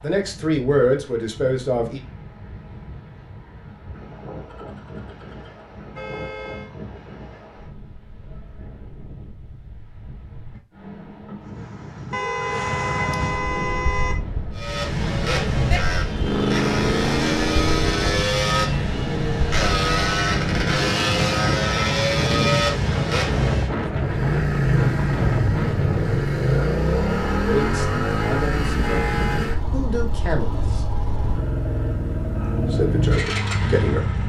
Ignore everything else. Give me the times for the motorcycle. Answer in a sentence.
The motorcycle can be heard from 14.6 to 34.2 s.